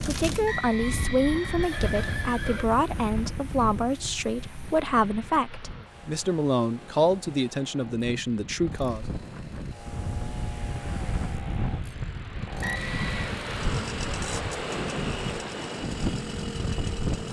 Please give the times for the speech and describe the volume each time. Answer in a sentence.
You can hear the speech from 0.1 to 9.1 s, at a steady volume.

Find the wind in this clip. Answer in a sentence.
The wind can be heard from 0.0 to 17.2 s.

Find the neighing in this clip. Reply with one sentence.
The neighing can be heard from 0.5 to 2.7 s and from 12.6 to 13.3 s.